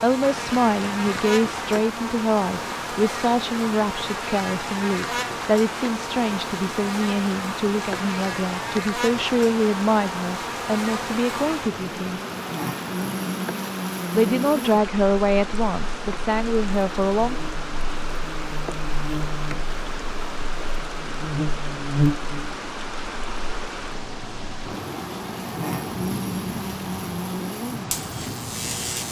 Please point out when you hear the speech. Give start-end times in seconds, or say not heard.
0.0-12.2, 14.1-17.4.